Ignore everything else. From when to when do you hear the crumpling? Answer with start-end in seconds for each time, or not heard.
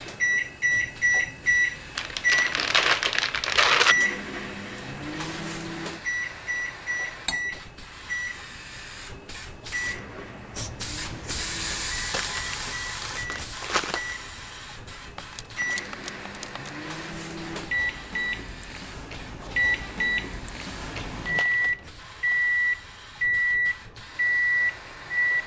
1.9-4.0, 12.1-14.2, 21.2-22.4.